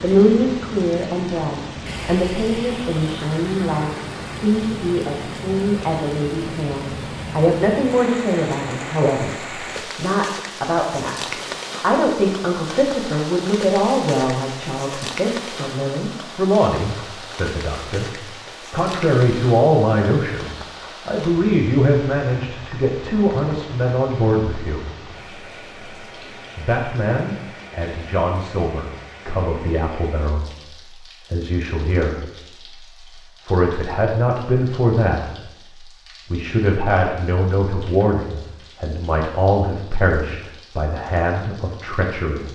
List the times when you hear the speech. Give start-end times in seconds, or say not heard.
0.0-18.1, 18.7-24.9, 26.6-30.4, 31.3-32.2, 33.5-35.5, 36.3-42.5.